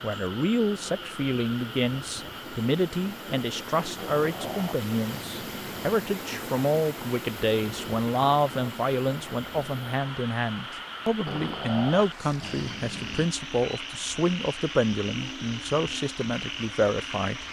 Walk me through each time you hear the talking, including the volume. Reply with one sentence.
You can hear the talking from 0.0 to 17.4 s, at a steady volume.